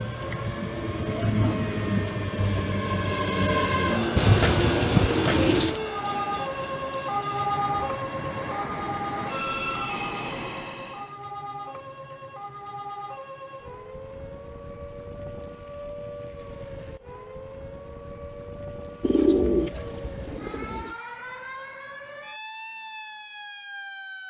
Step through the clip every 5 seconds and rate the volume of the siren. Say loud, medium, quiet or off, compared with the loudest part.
medium, loud, medium, medium, medium.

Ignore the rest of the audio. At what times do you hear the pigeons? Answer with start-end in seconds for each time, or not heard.
4.2-5.8, 19.0-20.9.